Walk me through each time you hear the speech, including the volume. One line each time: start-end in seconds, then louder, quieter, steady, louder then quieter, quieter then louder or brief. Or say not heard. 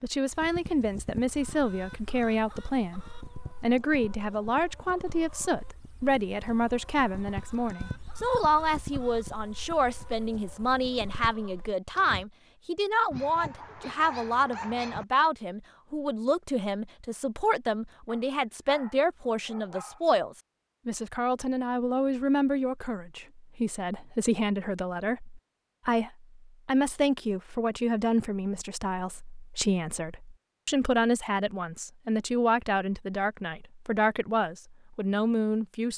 0.0-35.9 steady.